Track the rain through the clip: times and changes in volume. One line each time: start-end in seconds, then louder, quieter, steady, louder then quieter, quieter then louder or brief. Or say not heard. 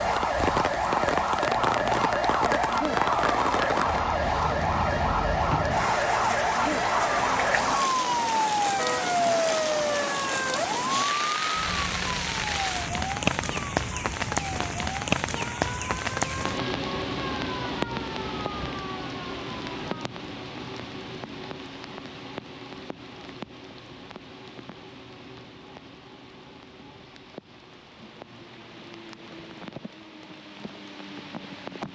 0.0-31.8 quieter.